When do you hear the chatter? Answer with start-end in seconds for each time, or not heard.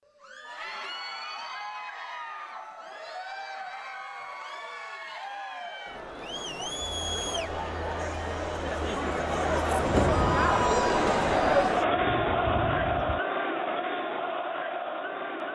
0.1-15.4.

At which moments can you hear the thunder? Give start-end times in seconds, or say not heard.
9.8-13.2.